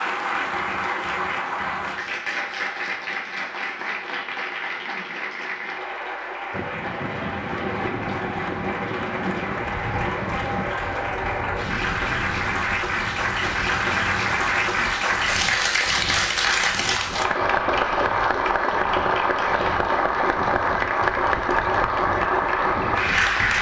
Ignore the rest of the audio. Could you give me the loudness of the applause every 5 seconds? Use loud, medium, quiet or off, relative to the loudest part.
medium, medium, loud, loud, loud.